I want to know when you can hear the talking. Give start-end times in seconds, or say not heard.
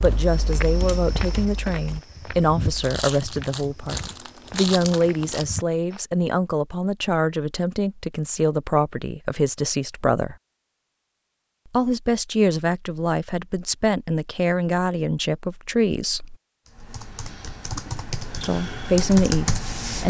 0.0-10.3, 11.7-16.4, 18.4-20.0.